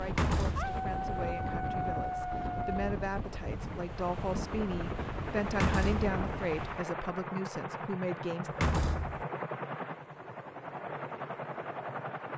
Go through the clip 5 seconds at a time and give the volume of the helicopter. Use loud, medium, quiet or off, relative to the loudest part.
medium, loud, loud.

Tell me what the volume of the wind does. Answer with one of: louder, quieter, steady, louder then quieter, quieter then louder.
steady.